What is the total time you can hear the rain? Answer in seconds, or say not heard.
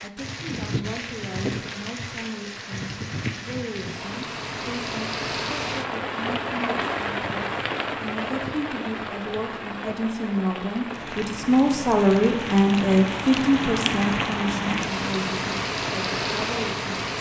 17 s.